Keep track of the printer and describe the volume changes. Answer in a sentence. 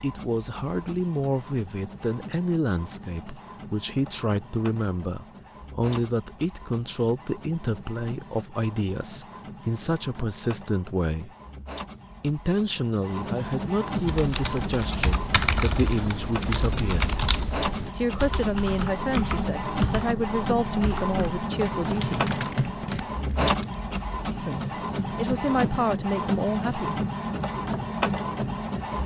The loudness of the printer goes up.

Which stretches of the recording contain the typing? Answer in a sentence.
The typing can be heard from 13.9 to 23.8 s.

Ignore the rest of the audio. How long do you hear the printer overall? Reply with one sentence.
You can hear the printer for 29 seconds altogether.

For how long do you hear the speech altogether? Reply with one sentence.
You can hear the speech for 23 seconds altogether.